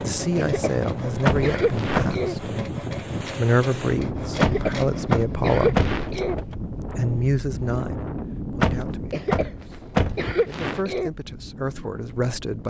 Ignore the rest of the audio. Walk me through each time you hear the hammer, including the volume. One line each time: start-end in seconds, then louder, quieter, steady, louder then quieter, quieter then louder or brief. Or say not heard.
not heard.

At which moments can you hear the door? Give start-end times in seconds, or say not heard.
1.2-2.2, 4.4-6.5, 8.6-10.3.